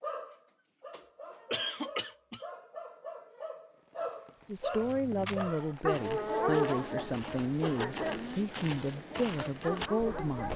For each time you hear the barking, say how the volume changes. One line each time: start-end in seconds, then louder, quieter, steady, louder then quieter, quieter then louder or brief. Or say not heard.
0.0-10.5 louder then quieter.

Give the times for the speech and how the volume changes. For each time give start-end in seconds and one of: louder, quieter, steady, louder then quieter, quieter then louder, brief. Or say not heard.
4.5-10.5 steady.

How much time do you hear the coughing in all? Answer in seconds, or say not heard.
3 s.